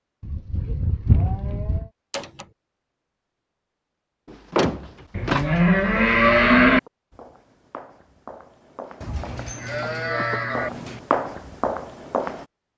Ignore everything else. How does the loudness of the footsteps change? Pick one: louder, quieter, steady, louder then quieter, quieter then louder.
louder.